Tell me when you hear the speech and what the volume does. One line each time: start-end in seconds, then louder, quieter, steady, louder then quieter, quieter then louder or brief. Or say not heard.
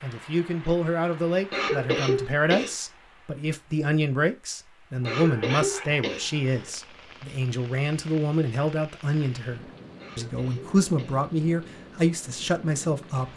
0.0-13.3 steady.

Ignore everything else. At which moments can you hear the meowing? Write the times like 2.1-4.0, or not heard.
not heard.